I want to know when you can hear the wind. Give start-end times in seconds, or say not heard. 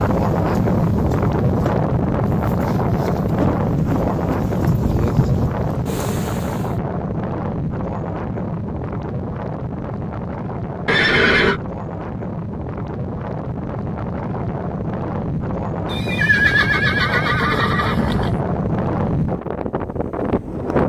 0.0-20.8.